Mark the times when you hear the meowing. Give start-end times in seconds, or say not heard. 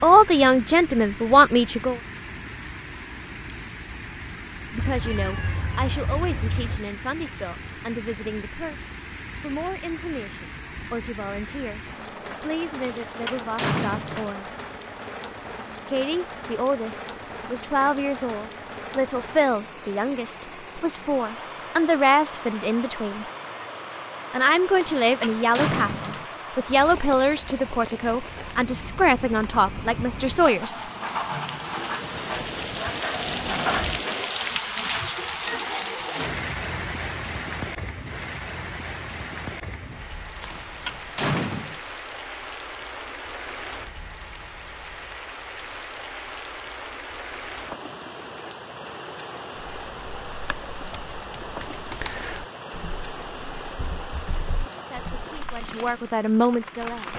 4.8-6.8.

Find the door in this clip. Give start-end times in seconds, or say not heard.
12.8-14.3, 24.8-26.2, 40.4-41.8.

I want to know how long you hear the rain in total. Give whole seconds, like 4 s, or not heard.
57 s.